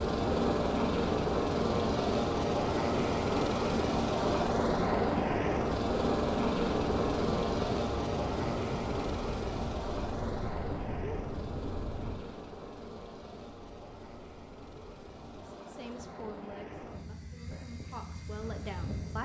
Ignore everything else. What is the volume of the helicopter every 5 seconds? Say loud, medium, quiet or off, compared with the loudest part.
loud, loud, quiet, quiet.